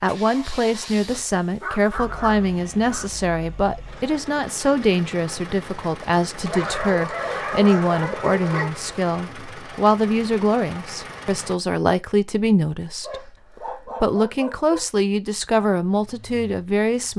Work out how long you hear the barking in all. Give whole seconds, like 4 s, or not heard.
6 s.